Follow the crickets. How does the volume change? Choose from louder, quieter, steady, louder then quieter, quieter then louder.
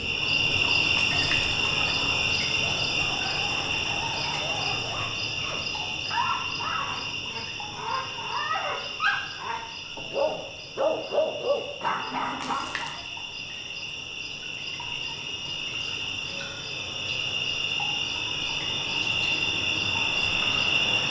quieter then louder.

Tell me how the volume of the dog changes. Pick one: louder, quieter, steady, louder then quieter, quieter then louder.
louder.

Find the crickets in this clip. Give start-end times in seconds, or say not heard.
0.0-21.0.